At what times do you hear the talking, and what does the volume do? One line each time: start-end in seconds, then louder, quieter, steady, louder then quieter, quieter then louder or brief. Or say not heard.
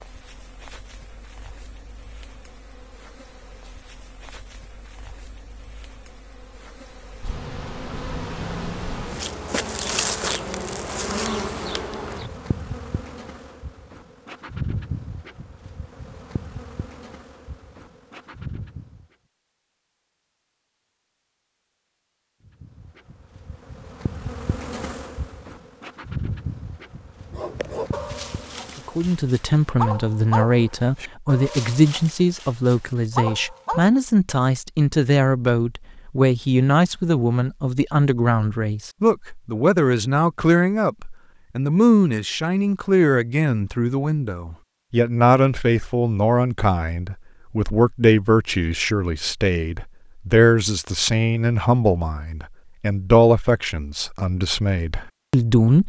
28.9-55.8 steady.